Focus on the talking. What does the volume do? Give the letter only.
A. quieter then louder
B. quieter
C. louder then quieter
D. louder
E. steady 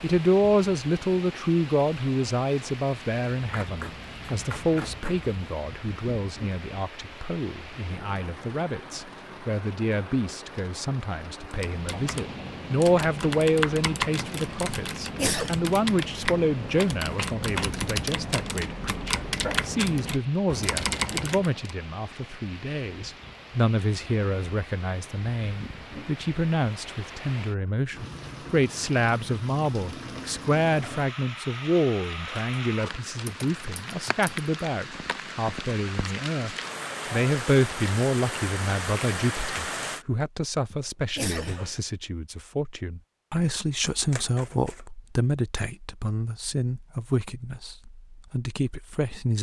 E.